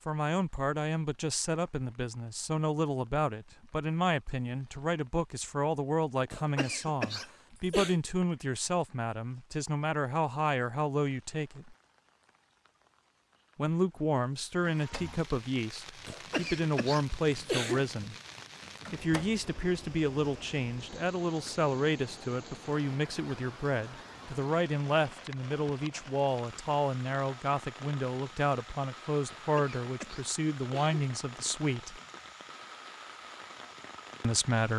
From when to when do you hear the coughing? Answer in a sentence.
The coughing can be heard from 6.3 to 8.0 s, from 16.1 to 17.9 s and from 29.2 to 31.1 s.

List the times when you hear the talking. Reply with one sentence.
The talking can be heard from 0.1 to 11.8 s, from 13.6 to 18.1 s, from 18.9 to 32.0 s and from 34.2 to 34.7 s.